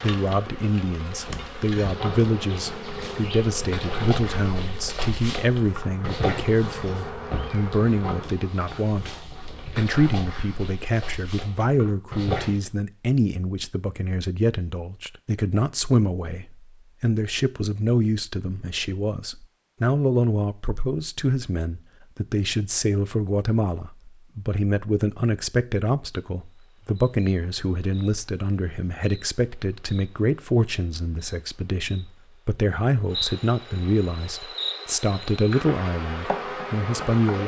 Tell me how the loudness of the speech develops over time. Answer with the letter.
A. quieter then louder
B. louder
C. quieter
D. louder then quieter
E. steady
E.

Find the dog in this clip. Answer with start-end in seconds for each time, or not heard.
1.2-12.7.